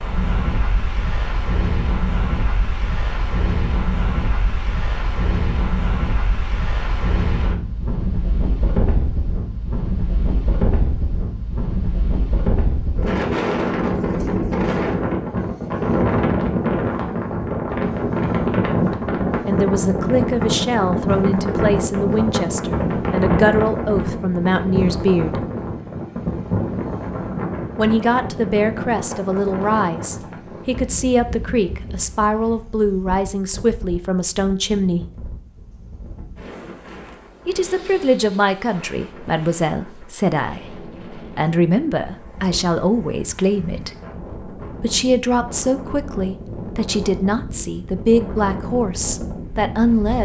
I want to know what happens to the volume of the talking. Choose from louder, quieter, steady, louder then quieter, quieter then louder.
steady.